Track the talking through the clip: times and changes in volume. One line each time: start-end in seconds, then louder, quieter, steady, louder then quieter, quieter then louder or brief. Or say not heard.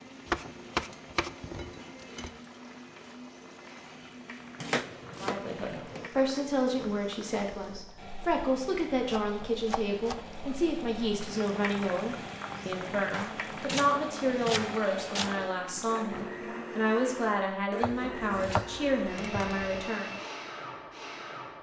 5.2-20.1 steady.